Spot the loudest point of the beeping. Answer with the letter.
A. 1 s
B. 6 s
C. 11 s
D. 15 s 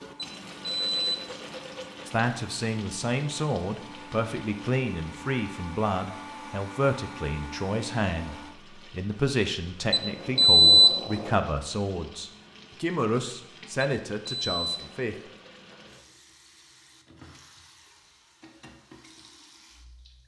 C.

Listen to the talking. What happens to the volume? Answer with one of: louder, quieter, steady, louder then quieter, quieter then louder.
steady.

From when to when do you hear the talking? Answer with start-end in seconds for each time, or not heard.
2.0-15.2.